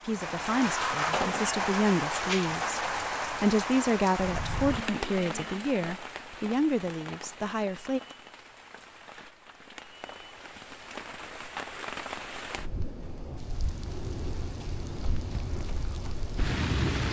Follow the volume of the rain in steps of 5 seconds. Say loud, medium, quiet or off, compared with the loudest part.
loud, medium, medium, loud.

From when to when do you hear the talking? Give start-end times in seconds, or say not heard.
0.0-8.0.